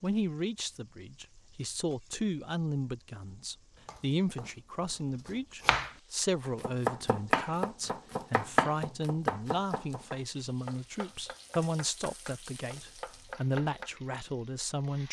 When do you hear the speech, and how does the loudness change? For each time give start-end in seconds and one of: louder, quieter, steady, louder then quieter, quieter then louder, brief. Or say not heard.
0.0-15.0 steady.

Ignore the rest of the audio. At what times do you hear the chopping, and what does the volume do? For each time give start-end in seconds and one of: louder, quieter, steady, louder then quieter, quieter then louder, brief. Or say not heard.
3.9-4.5 brief
5.2-13.9 quieter.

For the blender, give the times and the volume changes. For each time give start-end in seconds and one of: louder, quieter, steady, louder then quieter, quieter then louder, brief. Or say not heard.
not heard.